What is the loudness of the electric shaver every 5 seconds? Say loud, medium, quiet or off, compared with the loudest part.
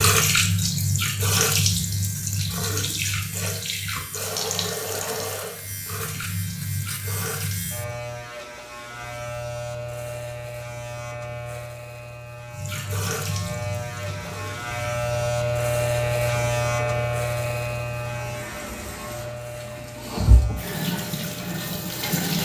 quiet, medium, medium, loud, quiet.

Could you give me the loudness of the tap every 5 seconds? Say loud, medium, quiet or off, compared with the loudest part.
loud, medium, medium, quiet, loud.